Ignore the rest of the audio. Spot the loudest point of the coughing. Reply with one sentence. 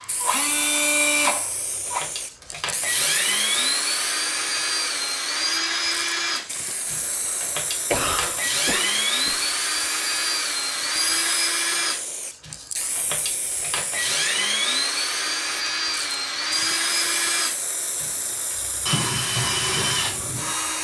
The volume of the coughing peaks at 8 seconds.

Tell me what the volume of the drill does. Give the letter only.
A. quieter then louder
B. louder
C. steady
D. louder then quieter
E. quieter
C.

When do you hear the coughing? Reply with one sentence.
The coughing can be heard from 7.9 to 9.4 s.